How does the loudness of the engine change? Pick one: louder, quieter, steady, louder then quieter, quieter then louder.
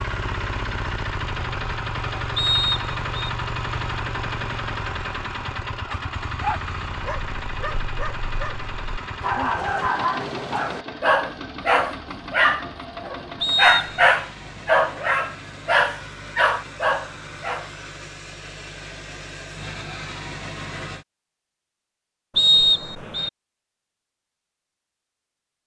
quieter.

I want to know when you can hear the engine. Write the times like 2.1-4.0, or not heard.
0.0-21.1.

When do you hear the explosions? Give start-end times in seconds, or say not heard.
not heard.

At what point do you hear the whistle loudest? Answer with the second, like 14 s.
23 s.